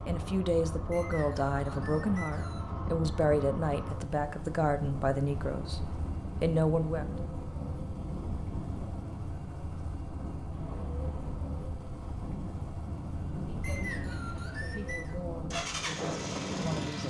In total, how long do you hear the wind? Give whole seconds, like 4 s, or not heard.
17 s.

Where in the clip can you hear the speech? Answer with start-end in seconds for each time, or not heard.
0.1-7.0, 13.5-17.0.